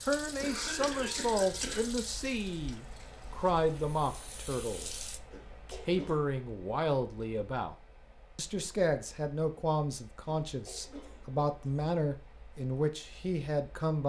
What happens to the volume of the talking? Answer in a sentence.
The loudness of the talking stays about the same.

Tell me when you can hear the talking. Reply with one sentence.
You can hear the talking from 0.0 to 7.8 s and from 8.3 to 14.0 s.